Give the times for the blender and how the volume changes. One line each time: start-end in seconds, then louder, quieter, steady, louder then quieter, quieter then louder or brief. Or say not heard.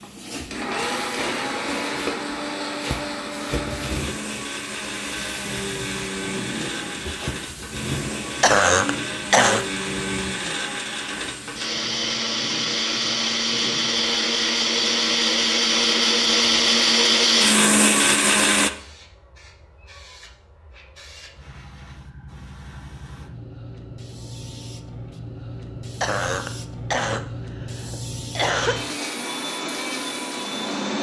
0.0-18.7 louder
28.5-30.9 brief.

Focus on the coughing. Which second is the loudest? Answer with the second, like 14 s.
9 s.